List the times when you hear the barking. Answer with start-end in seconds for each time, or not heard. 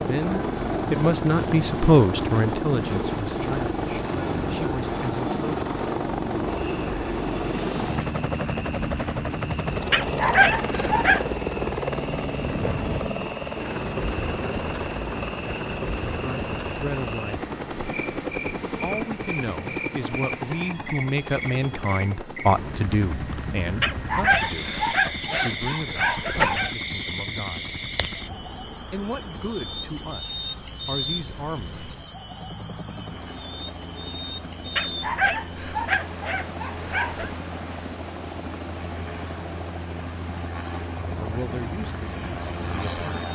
9.9-11.2, 23.8-26.7, 34.8-37.4.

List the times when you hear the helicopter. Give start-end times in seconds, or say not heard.
0.0-43.3.